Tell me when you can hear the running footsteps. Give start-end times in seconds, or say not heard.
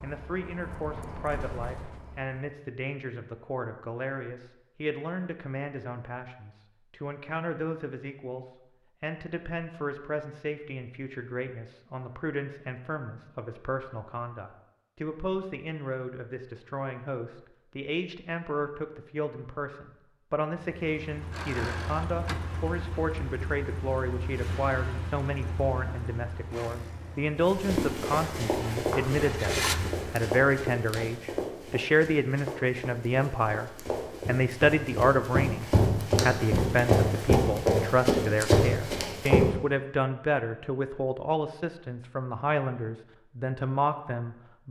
27.4-39.5.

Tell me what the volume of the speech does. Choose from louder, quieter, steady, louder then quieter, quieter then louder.
louder.